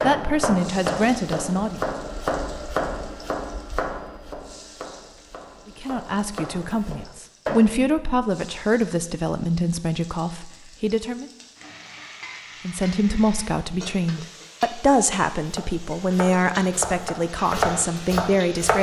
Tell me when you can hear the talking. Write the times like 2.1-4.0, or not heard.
0.0-1.8, 5.7-11.3, 12.7-18.7.